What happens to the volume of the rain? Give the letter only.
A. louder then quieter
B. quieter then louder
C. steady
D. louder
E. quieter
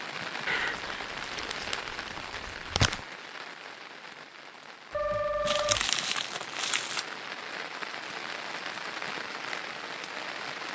B.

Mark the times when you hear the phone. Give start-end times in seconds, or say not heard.
4.9-5.9.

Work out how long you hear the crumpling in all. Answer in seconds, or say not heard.
4 s.